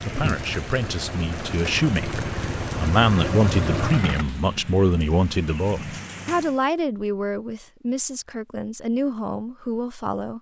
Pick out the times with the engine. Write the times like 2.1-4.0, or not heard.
0.0-4.2.